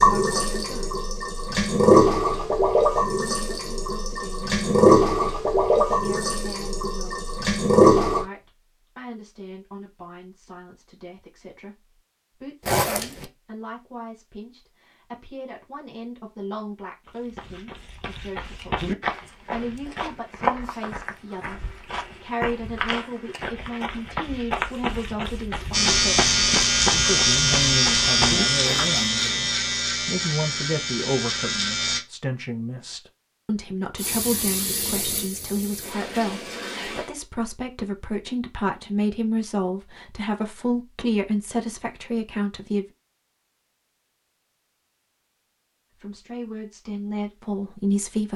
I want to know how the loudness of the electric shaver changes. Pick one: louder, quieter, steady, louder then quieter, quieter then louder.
quieter.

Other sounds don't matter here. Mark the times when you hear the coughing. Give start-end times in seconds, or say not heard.
not heard.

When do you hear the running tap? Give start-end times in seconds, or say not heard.
0.0-8.2, 34.0-37.1.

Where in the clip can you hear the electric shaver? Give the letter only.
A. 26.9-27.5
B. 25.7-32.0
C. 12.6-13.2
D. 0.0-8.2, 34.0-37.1
B.